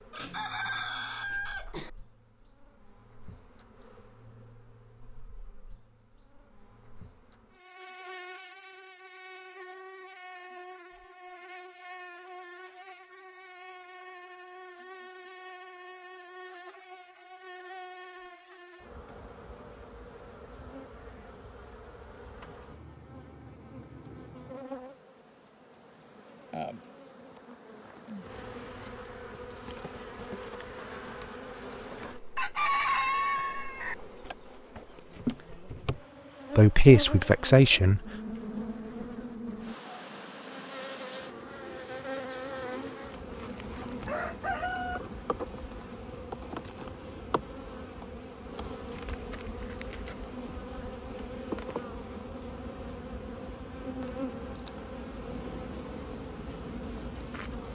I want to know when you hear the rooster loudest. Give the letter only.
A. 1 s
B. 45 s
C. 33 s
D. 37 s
C.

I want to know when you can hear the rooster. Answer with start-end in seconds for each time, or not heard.
0.1-1.9, 32.4-34.0, 44.0-45.0.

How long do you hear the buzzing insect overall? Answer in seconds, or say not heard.
58 s.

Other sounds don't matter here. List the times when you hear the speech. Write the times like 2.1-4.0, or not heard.
36.5-38.0.